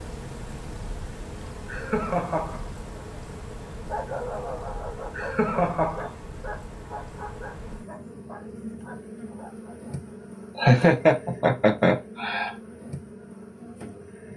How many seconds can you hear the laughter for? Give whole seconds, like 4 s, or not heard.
4 s.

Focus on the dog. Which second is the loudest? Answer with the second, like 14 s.
4 s.